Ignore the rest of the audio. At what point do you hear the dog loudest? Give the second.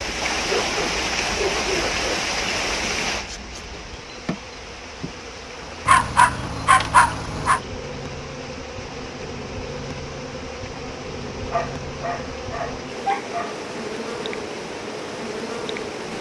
7 s.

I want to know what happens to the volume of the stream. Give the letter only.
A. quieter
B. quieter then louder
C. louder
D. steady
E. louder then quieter
A.